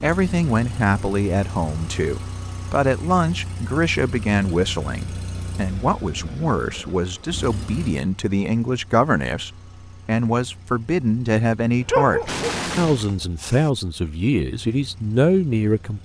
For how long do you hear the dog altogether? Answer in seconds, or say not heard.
2 s.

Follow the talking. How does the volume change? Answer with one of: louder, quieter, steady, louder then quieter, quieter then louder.
steady.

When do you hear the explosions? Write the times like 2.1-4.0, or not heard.
12.2-13.1.